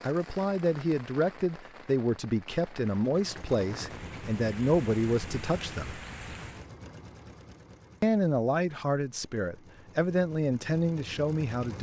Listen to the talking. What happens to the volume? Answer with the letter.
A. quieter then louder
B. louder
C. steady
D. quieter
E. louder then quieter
C.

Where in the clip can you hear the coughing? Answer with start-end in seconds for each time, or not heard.
not heard.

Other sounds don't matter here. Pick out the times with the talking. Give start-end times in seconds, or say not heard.
0.0-6.0, 8.0-11.7.